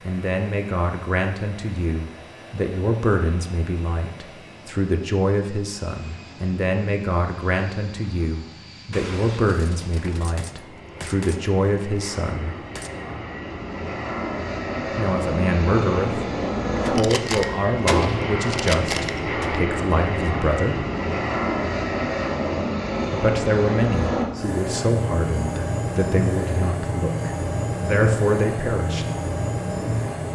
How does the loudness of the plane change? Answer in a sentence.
The volume of the plane goes up.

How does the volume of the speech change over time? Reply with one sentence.
The loudness of the speech stays about the same.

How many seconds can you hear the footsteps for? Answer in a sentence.
You can't hear the footsteps here.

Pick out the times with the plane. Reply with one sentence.
The plane can be heard from 0.0 to 30.3 s.